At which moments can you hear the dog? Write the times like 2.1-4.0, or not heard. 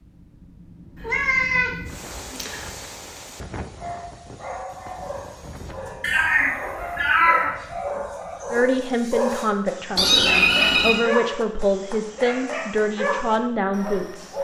3.8-14.3.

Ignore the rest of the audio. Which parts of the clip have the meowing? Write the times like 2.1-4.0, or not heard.
1.0-2.7, 6.0-7.5, 9.9-11.1.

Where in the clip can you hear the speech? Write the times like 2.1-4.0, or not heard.
8.5-14.3.